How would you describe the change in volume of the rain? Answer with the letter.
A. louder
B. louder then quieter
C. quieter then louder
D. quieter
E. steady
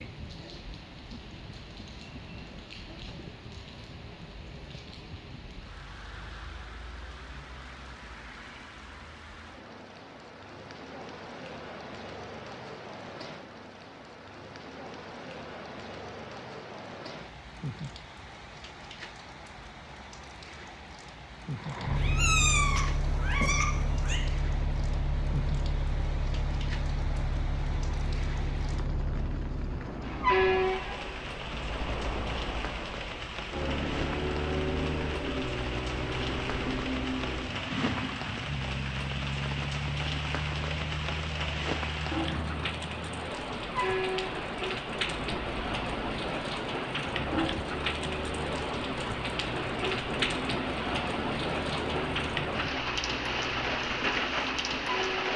A.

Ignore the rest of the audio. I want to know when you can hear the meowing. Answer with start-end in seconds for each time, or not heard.
21.9-24.2.